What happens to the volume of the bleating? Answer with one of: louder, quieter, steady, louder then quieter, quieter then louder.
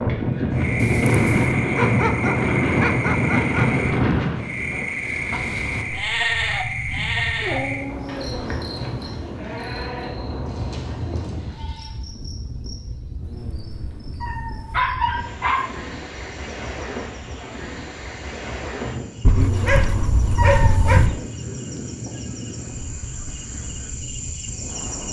quieter.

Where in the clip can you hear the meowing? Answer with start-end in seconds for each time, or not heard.
0.8-1.6, 13.2-14.8, 19.4-21.1.